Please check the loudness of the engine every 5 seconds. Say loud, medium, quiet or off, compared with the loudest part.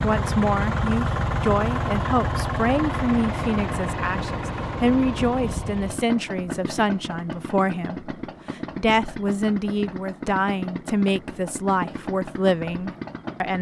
loud, medium, medium.